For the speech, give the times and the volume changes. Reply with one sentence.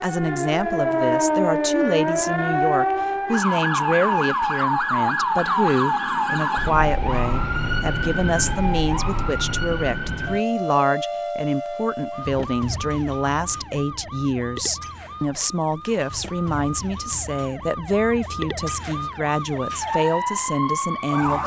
The speech can be heard from 0.0 to 21.4 s, at a steady volume.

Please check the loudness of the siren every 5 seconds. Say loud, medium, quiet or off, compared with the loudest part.
loud, loud, medium, medium, loud.